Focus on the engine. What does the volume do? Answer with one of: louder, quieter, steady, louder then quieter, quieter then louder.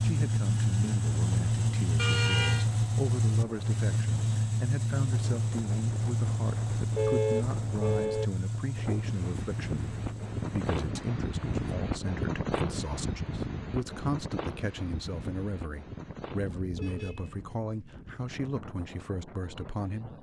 quieter.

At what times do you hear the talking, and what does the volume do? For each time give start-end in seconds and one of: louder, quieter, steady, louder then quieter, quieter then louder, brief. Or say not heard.
0.0-20.1 steady.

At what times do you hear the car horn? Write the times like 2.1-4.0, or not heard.
1.9-2.6, 7.0-8.2, 16.7-17.4.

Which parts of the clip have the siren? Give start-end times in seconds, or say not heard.
not heard.